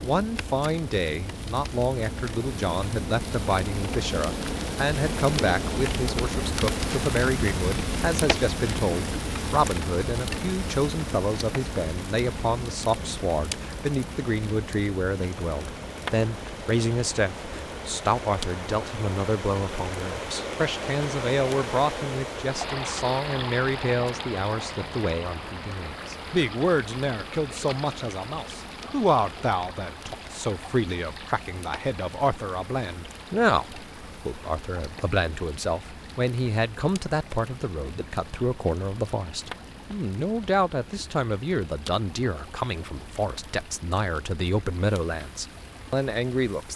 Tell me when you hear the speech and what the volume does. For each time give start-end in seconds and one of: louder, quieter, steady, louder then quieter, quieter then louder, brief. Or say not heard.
0.0-46.7 steady.